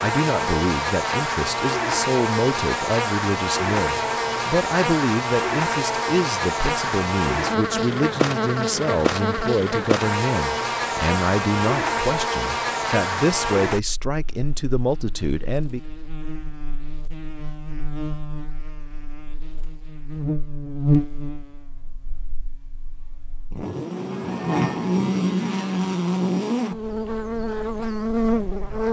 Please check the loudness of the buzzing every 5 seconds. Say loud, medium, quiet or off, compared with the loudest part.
loud, loud, loud, quiet, loud, loud.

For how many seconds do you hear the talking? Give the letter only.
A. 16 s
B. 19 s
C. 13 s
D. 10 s
A.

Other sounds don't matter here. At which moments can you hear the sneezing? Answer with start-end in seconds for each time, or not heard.
not heard.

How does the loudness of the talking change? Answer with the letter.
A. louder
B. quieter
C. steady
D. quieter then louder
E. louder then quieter
C.